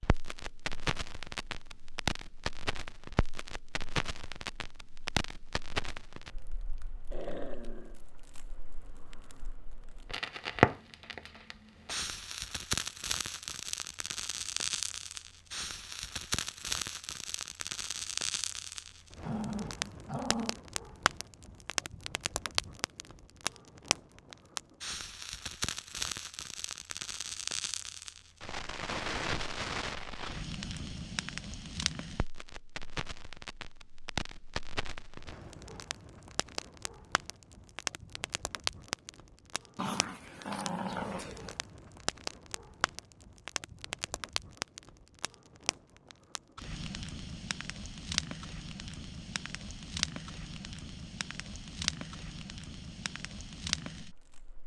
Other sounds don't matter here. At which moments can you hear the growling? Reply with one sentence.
You can hear the growling from 7.1 to 8.0 s, from 19.2 to 20.6 s and from 39.8 to 41.5 s.